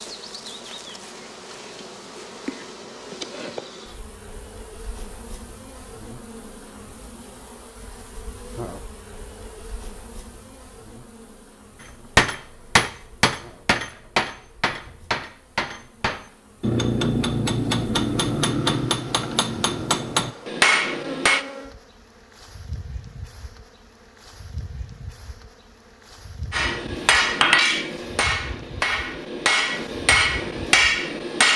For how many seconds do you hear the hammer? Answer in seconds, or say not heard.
14 s.